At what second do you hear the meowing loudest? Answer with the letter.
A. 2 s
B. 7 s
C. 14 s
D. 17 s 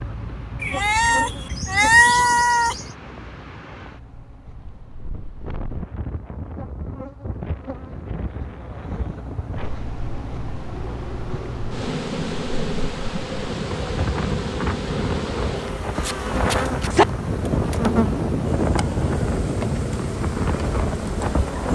A.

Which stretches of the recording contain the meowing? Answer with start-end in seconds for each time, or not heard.
0.6-2.9, 15.9-17.1.